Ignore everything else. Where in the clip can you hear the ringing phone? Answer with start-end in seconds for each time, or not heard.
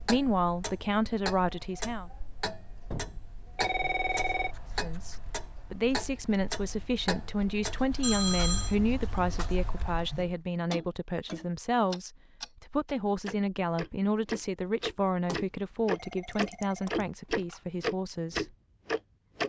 2.9-4.5, 8.0-8.8, 15.2-17.6.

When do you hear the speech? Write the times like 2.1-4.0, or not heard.
0.0-2.1, 4.8-18.5.